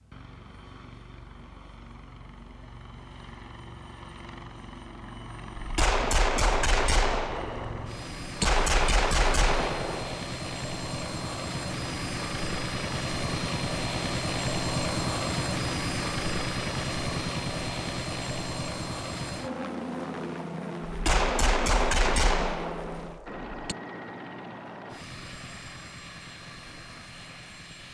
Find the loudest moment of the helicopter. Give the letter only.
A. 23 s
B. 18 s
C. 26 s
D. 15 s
D.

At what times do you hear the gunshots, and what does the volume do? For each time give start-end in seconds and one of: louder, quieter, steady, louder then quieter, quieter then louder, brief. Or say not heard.
5.5-10.2 quieter then louder
20.9-23.8 brief.